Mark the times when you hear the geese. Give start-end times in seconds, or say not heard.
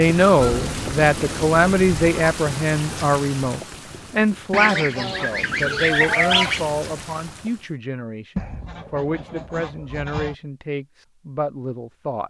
0.3-2.5, 4.5-6.7, 8.3-10.3.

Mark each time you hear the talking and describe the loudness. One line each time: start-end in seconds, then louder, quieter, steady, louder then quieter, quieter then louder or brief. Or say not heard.
0.0-12.2 quieter.